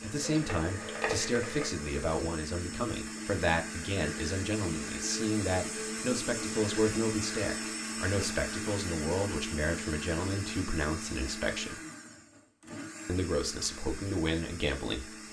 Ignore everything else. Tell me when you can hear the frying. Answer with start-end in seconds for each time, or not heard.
0.0-1.9.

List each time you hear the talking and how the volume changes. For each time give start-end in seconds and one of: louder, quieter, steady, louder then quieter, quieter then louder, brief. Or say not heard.
0.0-11.8 steady
13.1-15.1 brief.